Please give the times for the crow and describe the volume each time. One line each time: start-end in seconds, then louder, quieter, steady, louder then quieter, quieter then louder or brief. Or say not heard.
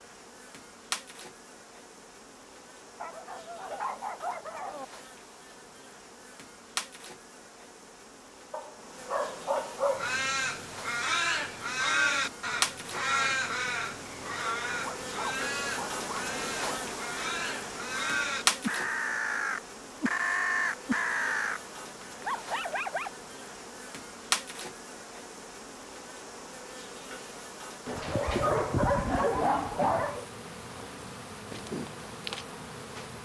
9.8-21.6 quieter then louder.